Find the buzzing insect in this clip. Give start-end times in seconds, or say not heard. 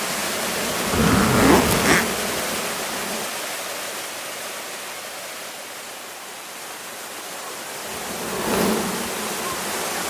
0.0-3.3, 7.8-10.0.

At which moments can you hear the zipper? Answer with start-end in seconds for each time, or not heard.
0.9-2.0.